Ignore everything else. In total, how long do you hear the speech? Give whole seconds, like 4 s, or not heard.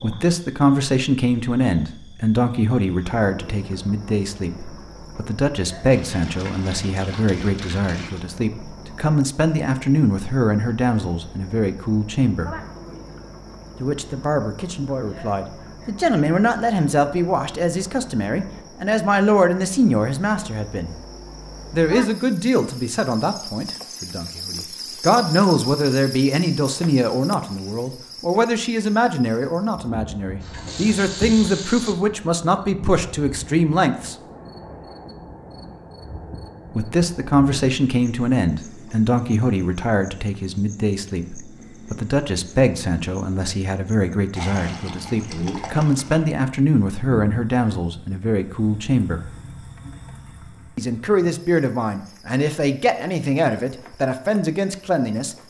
49 s.